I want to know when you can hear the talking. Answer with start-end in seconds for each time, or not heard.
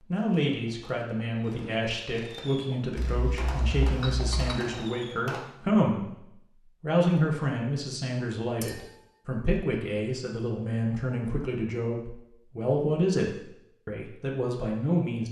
0.1-15.2.